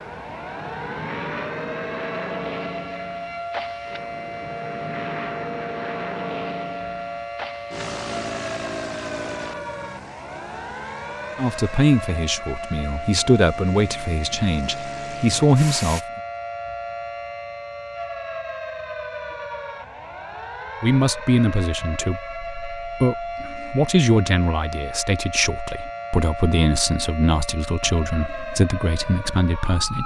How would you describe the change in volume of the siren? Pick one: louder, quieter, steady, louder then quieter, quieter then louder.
steady.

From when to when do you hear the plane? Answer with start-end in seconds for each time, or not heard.
0.0-16.1.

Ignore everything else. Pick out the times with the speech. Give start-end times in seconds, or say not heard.
11.3-16.0, 20.8-30.0.